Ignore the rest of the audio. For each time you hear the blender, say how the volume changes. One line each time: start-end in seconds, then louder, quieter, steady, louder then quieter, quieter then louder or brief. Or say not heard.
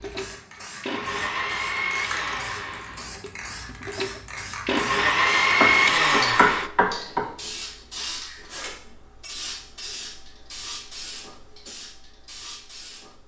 0.0-6.7 quieter then louder.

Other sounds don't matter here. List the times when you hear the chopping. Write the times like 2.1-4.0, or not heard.
5.5-7.2.